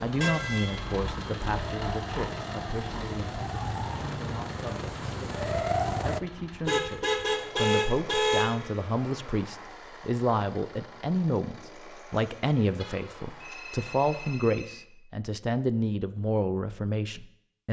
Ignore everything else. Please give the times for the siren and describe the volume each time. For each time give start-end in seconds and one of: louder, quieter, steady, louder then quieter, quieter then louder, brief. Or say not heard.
0.0-6.2 louder.